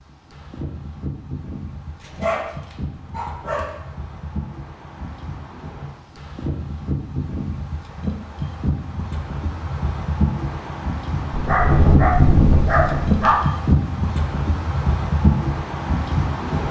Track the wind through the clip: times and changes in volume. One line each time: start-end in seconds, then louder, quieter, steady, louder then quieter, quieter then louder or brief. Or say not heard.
0.0-16.6 louder.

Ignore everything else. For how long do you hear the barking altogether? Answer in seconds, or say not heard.
4 s.